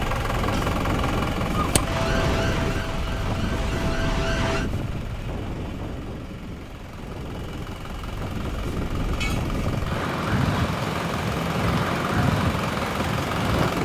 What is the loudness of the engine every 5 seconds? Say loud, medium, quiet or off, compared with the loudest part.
loud, medium, loud.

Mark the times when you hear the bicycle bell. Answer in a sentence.
You can't hear the bicycle bell here.